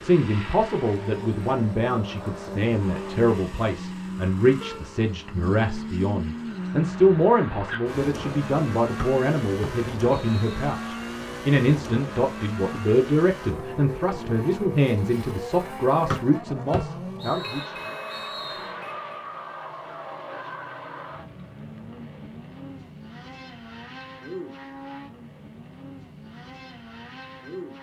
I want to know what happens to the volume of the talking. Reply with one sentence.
The volume of the talking stays about the same.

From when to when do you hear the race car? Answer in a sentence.
You can hear the race car from 0.0 to 27.7 s.